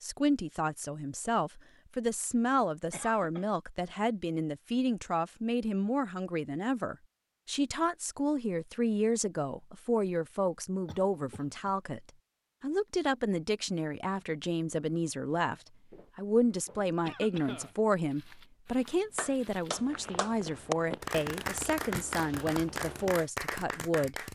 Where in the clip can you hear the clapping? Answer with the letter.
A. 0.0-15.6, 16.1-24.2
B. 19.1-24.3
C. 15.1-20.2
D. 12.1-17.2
B.